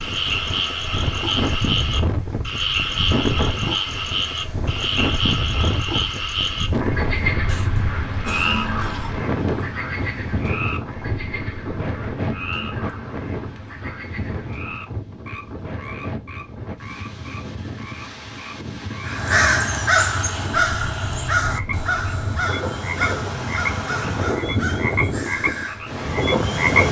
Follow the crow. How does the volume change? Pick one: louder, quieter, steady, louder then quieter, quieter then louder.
quieter.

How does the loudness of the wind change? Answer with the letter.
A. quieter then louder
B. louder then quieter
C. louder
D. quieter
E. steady
A.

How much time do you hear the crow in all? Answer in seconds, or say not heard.
7 s.